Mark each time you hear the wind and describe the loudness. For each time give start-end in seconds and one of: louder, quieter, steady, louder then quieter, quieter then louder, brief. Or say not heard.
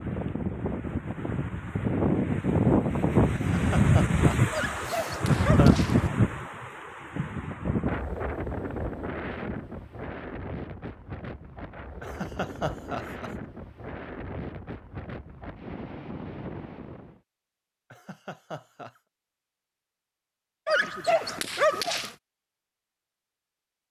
0.0-17.2 quieter.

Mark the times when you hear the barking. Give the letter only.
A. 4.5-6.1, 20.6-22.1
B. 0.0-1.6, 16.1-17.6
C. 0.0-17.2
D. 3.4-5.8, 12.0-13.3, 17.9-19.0
A.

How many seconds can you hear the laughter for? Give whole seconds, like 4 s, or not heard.
5 s.